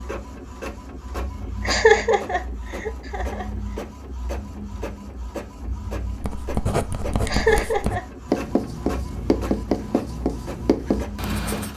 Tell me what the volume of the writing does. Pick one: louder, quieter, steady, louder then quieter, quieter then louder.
steady.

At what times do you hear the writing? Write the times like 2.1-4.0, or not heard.
6.2-11.7.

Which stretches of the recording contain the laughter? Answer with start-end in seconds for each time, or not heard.
1.6-3.5, 7.2-8.1.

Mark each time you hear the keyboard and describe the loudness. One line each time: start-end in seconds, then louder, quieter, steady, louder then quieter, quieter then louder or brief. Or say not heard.
not heard.